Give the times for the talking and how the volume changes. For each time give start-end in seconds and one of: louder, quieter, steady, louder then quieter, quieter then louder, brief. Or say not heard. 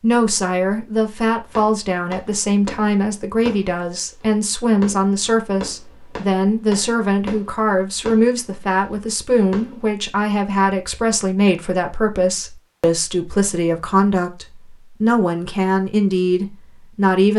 0.0-17.3 steady.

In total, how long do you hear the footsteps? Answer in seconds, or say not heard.
not heard.